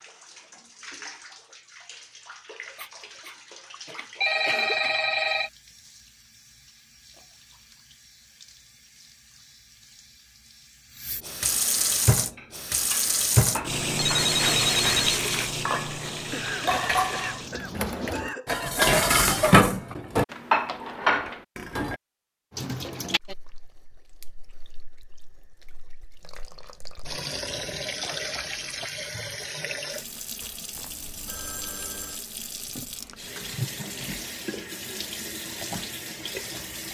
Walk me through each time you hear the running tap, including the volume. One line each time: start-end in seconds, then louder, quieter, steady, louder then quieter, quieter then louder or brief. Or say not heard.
0.0-18.2 quieter then louder
22.5-36.8 louder.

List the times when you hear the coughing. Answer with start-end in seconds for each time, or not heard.
3.9-5.0, 16.3-18.9, 28.0-28.9.